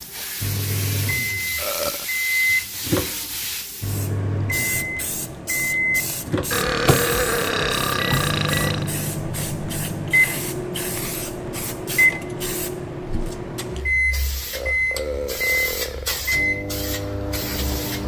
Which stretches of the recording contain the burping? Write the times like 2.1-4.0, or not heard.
1.6-2.0, 6.5-8.9, 14.5-16.2.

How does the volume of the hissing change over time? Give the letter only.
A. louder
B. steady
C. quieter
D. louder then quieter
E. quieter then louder
B.